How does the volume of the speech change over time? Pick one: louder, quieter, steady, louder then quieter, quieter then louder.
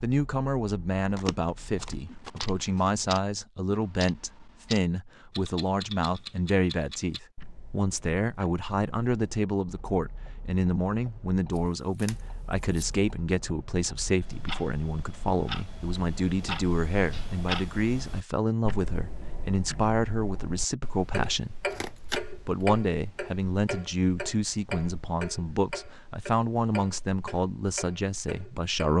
steady.